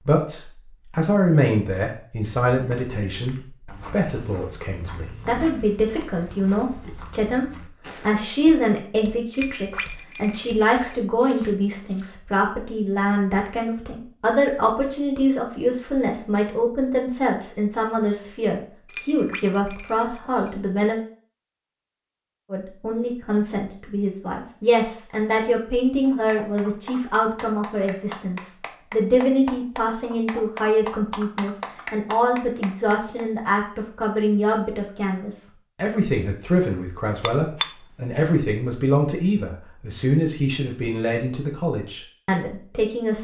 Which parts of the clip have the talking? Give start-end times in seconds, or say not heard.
0.0-21.0, 22.5-43.1.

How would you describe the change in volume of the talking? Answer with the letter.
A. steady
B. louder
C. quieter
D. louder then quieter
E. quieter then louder
A.